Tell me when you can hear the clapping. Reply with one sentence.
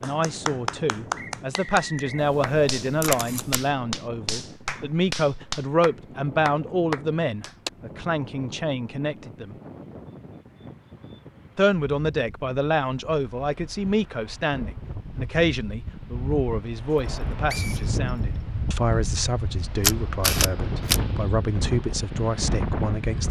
You can hear the clapping from 0.0 to 7.7 s.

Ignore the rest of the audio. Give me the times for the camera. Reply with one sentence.
You can hear the camera from 2.1 to 3.7 s and from 19.8 to 21.0 s.